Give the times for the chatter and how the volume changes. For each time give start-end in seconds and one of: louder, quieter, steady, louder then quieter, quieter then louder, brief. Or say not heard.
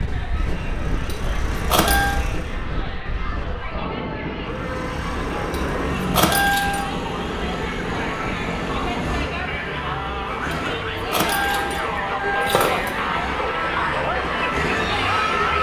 0.0-15.5 louder.